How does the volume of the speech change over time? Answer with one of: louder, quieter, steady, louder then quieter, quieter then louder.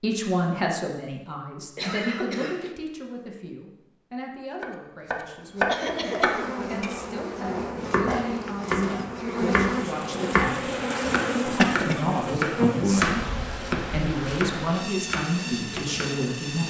quieter then louder.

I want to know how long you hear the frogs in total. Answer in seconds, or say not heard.
not heard.